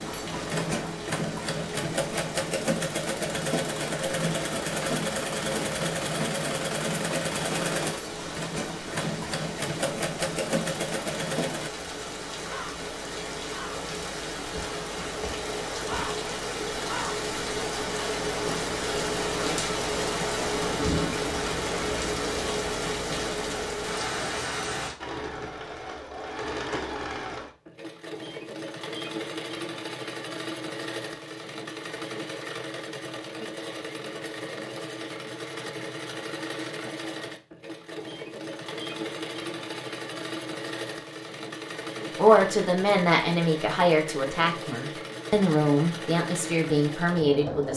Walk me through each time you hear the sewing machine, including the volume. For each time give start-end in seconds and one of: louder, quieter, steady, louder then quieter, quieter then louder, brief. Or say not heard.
0.0-11.7 steady
24.9-47.7 steady.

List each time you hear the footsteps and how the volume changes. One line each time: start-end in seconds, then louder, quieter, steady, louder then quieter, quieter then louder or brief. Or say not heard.
not heard.